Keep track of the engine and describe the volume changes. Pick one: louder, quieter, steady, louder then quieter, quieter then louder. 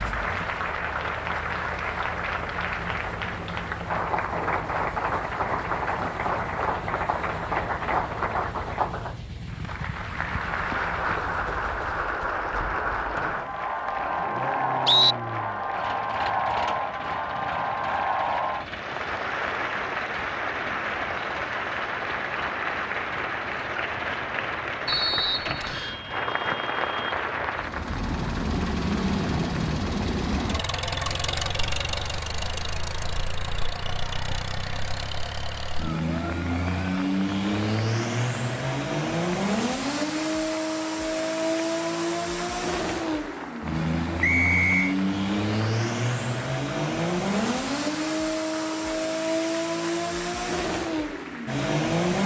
louder.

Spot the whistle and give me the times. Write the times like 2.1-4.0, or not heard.
13.2-15.2, 24.9-25.9, 44.2-45.0.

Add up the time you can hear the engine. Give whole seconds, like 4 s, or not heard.
52 s.